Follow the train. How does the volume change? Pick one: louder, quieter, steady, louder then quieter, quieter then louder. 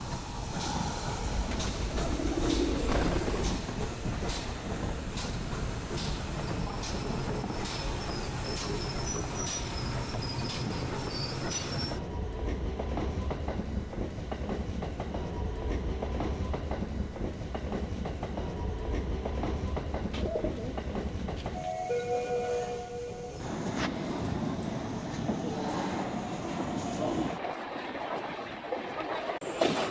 steady.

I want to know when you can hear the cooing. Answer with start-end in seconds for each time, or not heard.
1.2-3.6, 20.1-21.8.